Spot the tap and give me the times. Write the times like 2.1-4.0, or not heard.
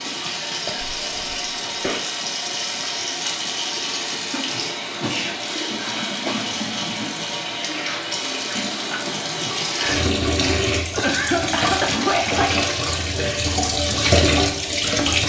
0.0-15.2.